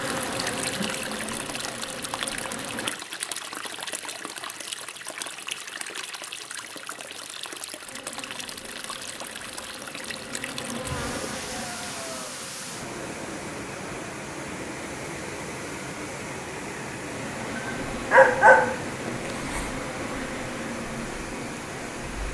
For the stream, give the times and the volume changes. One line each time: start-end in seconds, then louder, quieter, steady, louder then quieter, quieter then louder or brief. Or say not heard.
0.0-22.2 steady.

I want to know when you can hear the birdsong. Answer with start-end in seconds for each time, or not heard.
not heard.